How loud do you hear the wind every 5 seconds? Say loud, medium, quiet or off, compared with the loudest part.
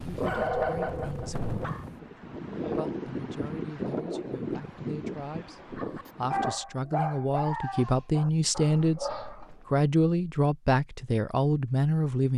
loud, loud, off.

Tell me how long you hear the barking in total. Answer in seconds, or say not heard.
6 s.